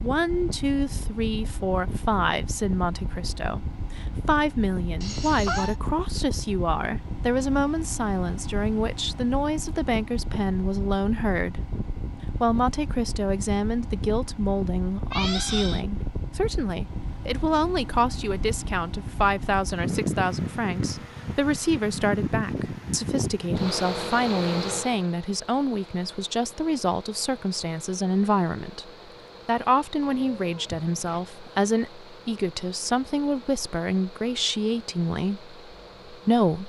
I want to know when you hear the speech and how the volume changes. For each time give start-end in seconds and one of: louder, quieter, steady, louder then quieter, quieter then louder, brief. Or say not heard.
0.0-11.6 steady
12.4-36.6 steady.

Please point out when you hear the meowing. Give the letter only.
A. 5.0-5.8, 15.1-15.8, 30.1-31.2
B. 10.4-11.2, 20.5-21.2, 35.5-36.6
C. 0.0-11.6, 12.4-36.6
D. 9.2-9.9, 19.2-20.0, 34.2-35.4
A.